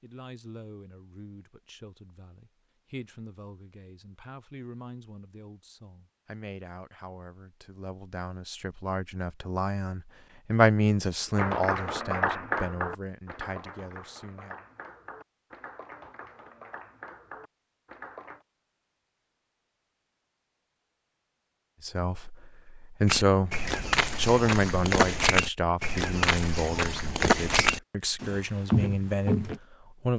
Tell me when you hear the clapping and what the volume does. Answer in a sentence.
You can hear the clapping from 11.3 to 18.4 s, getting quieter.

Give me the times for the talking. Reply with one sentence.
The talking can be heard from 0.0 to 14.7 s and from 21.8 to 30.1 s.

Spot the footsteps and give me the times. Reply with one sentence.
The footsteps can be heard from 23.1 to 29.6 s.